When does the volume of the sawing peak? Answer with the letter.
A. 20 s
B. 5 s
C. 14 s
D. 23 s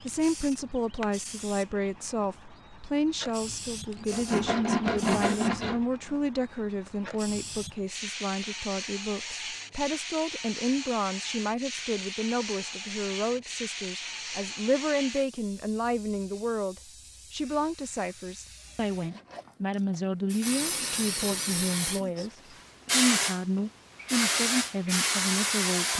B.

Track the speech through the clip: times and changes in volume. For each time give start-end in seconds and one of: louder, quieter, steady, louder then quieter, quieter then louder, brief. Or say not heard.
0.0-25.9 steady.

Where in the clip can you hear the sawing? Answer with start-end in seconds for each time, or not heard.
4.0-6.2.